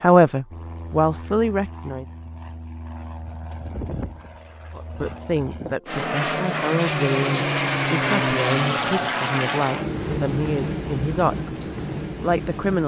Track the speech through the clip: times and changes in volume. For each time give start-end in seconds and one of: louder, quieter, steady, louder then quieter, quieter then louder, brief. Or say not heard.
0.0-2.0 brief
4.8-12.8 steady.